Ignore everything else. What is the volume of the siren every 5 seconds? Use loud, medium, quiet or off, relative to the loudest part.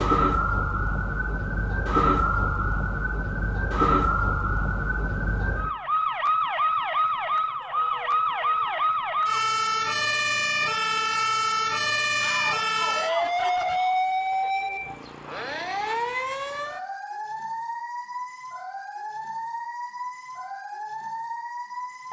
loud, loud, loud, medium, medium.